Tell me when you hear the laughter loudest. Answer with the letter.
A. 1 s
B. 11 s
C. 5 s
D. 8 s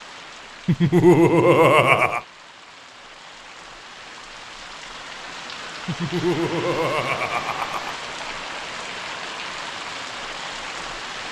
A.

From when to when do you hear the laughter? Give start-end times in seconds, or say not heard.
0.7-2.2, 5.8-8.0.